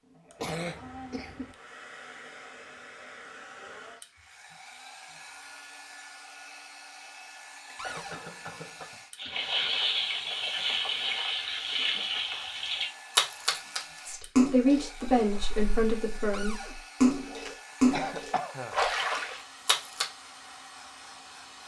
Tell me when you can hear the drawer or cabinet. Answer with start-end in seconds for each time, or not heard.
7.8-8.2, 16.3-16.8.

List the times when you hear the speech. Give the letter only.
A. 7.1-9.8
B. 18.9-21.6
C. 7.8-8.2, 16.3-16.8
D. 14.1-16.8
D.